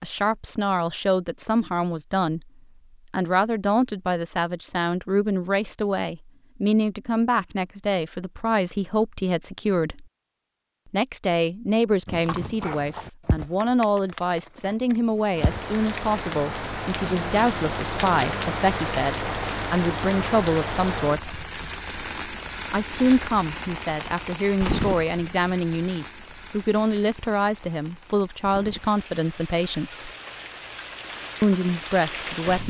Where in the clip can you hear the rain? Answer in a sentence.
You can hear the rain from 15.3 to 32.6 s.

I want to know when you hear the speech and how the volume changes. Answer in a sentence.
The speech can be heard briefly from 0.0 to 2.5 s; from 3.1 to 10.1 s, at a steady volume; from 10.9 to 21.3 s, at a steady volume; from 22.7 to 30.1 s, at a steady volume; and briefly from 31.4 to 32.6 s.